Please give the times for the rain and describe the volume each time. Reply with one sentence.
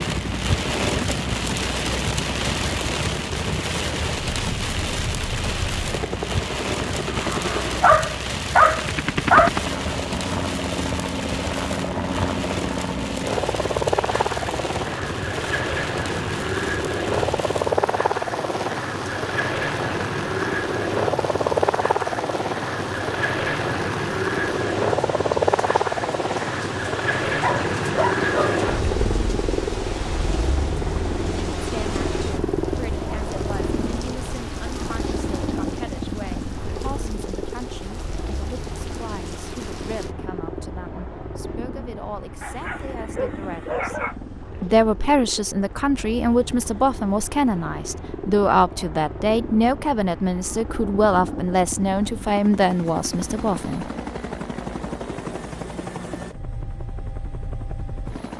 The rain can be heard from 0.0 to 40.1 s, getting quieter.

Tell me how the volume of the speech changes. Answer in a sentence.
The volume of the speech goes up.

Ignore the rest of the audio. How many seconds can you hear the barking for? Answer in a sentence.
The barking can be heard for 5 seconds in total.